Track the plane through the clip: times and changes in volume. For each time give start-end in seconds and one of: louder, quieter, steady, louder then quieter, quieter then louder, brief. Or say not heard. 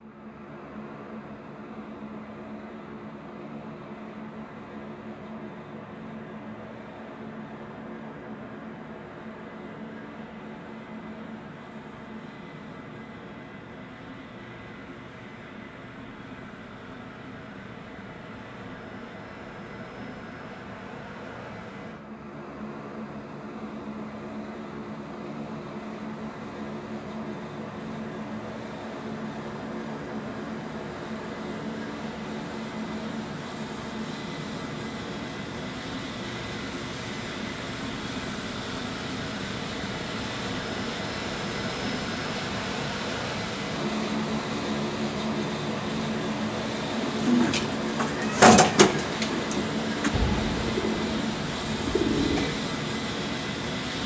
0.0-54.0 louder.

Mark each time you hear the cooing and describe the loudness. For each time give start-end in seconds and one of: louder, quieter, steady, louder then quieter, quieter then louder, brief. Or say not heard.
47.0-52.5 louder then quieter.